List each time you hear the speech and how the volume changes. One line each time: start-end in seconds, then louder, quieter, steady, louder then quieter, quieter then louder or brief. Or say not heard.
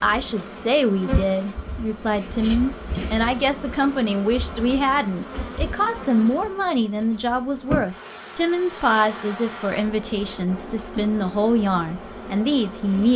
0.0-13.1 steady.